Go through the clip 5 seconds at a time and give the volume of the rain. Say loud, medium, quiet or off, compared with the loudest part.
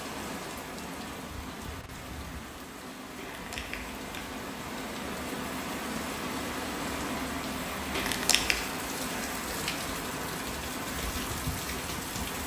medium, loud, loud.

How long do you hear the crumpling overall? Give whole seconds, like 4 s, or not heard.
2 s.